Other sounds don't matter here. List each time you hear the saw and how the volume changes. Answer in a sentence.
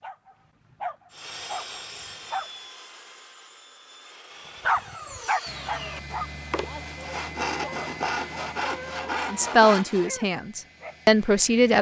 The saw can be heard from 1.1 to 10.1 s, getting quieter then louder.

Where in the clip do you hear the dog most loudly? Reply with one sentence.
The volume of the dog peaks at 5 seconds.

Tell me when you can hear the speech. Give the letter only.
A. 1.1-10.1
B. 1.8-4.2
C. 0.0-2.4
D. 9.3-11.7
D.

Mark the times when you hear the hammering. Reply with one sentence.
The hammering can't be heard in this clip.